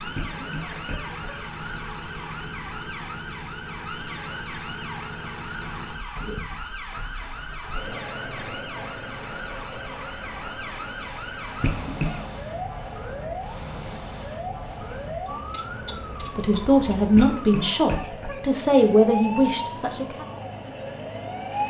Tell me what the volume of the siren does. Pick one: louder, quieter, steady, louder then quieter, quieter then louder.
steady.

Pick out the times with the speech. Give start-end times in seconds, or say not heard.
16.4-20.2.